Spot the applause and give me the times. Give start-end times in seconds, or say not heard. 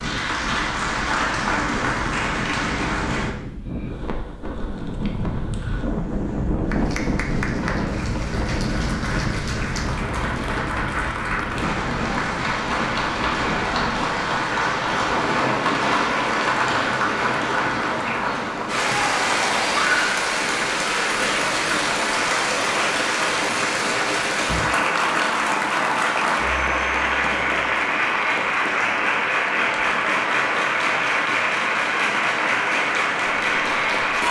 0.0-3.4, 6.7-34.2.